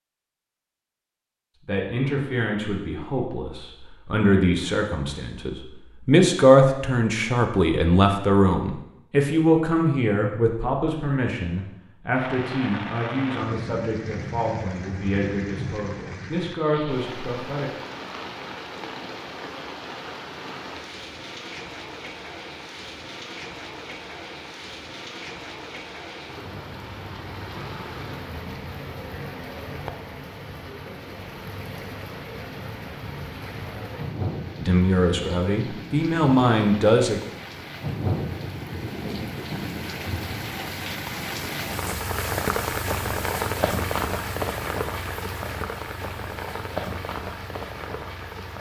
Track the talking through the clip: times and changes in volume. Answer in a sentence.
You can hear the talking from 1.6 to 17.7 s, getting louder then quieter; and briefly from 34.6 to 37.2 s.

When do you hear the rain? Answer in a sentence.
You can hear the rain from 12.1 to 48.5 s.